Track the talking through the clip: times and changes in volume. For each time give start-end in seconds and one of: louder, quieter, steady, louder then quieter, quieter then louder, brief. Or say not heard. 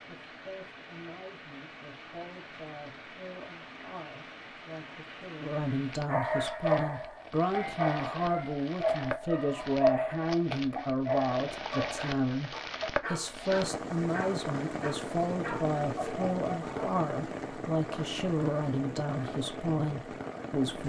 0.1-20.8 louder.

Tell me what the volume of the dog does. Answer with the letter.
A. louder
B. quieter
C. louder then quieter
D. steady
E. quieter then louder
B.